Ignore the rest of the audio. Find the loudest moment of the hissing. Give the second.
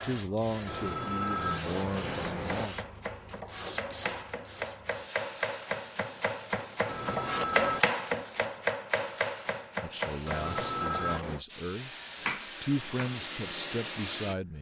14 s.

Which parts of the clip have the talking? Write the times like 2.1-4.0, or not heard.
0.0-2.8, 9.8-11.9, 12.6-14.5.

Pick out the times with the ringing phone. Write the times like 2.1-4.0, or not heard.
0.7-2.7, 6.8-7.8, 10.2-11.4.